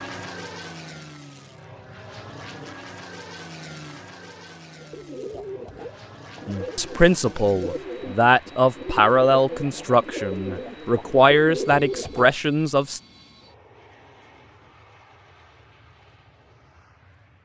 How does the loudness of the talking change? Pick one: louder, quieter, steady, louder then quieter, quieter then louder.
steady.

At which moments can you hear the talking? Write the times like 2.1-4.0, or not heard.
6.5-13.0.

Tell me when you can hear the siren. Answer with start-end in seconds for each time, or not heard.
not heard.